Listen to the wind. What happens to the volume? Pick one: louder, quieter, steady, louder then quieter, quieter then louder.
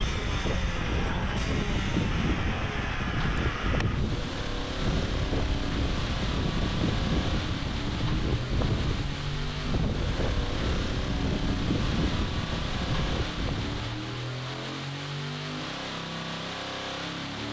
steady.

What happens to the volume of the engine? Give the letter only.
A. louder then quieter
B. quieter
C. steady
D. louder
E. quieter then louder
C.